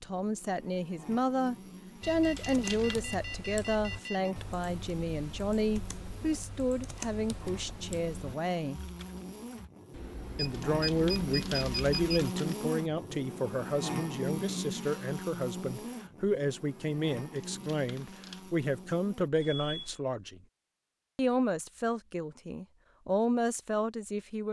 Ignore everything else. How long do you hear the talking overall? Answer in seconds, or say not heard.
22 s.